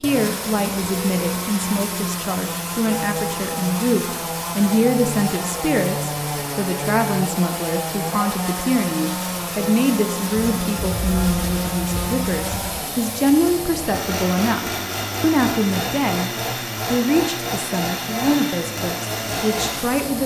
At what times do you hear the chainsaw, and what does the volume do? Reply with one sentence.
You can hear the chainsaw from 0.0 to 20.2 s, at a steady volume.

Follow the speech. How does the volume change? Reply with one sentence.
The volume of the speech stays about the same.